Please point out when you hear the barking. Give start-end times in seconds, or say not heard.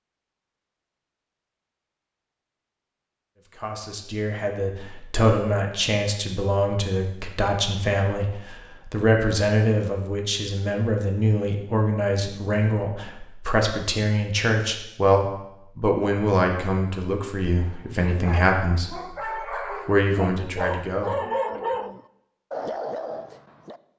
17.6-23.8.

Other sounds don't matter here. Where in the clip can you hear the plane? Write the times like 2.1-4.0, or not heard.
not heard.